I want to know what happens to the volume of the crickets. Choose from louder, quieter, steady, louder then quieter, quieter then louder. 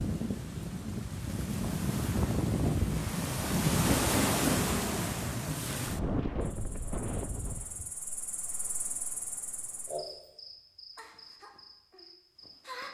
louder then quieter.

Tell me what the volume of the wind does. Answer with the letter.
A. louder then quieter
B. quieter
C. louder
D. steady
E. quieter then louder
A.